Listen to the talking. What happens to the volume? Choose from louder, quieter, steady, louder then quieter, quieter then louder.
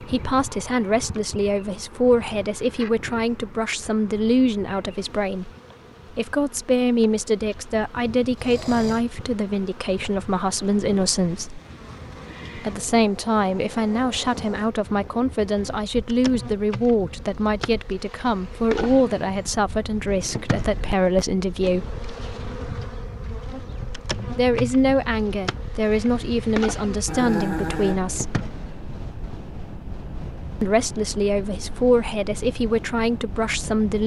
steady.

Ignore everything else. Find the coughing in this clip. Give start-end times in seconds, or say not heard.
not heard.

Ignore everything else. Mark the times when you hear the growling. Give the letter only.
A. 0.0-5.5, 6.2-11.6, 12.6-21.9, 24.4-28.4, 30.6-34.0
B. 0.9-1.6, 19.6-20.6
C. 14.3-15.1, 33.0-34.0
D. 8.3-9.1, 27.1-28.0
D.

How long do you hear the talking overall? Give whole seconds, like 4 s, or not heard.
28 s.